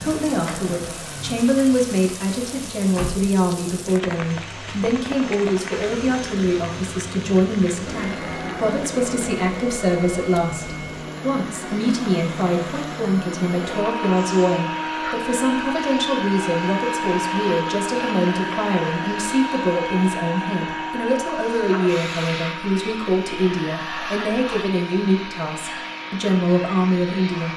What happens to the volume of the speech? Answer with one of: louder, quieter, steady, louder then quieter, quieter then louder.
steady.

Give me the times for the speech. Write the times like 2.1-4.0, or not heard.
0.0-27.5.